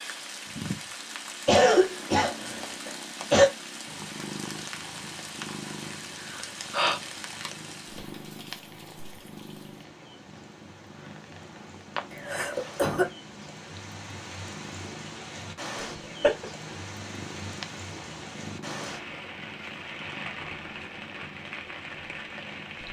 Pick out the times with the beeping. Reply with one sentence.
The beeping can't be heard in this clip.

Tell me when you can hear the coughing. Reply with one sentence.
The coughing can be heard from 1.4 to 3.5 s, from 12.1 to 13.1 s and from 15.8 to 16.4 s.